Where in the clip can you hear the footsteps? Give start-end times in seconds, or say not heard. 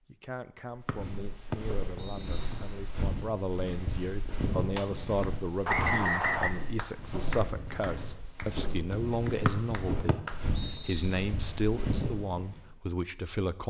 0.8-12.7.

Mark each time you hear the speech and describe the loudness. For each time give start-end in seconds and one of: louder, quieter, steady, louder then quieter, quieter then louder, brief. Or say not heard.
0.1-13.6 louder.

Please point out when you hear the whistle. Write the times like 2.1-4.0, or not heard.
0.8-2.6, 5.7-6.5, 9.4-11.2.